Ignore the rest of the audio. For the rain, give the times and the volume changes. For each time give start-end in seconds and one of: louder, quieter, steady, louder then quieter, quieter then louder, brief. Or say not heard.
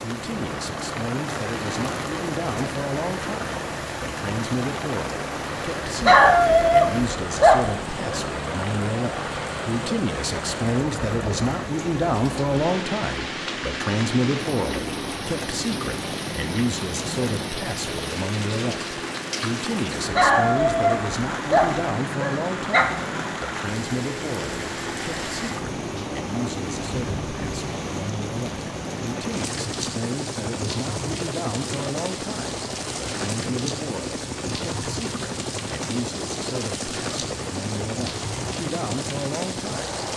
0.0-40.1 steady.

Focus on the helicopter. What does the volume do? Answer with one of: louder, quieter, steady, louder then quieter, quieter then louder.
steady.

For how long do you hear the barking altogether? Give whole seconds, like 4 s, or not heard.
5 s.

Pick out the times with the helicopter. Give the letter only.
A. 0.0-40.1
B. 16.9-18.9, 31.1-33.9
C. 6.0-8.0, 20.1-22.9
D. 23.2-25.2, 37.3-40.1
A.